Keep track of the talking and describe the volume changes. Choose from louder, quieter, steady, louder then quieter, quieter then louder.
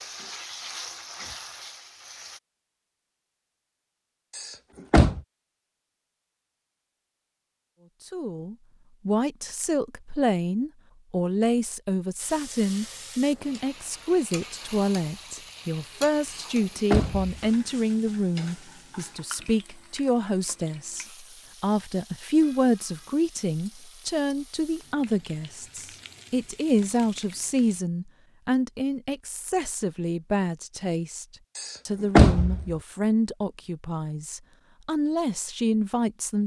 steady.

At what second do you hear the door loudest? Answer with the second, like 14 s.
32 s.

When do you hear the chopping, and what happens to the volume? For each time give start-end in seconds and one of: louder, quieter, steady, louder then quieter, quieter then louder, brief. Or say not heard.
not heard.